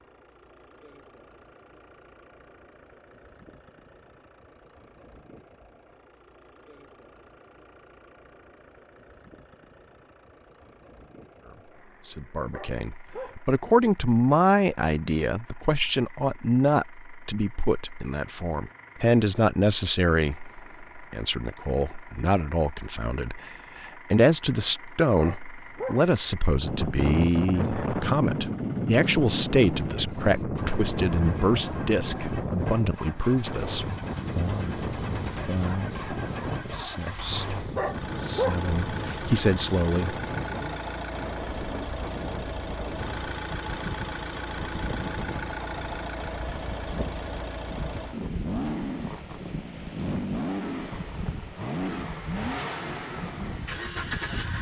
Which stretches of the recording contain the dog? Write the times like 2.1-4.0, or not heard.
12.5-13.3, 25.1-26.0, 37.8-38.6.